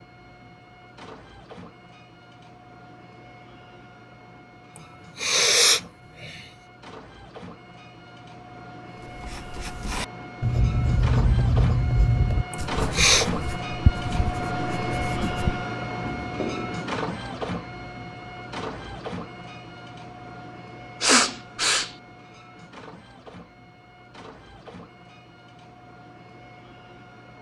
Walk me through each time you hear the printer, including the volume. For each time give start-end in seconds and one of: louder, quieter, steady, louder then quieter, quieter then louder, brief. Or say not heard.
0.0-27.3 louder then quieter.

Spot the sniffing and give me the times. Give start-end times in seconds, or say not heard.
5.2-6.5, 12.5-13.2, 21.0-21.9.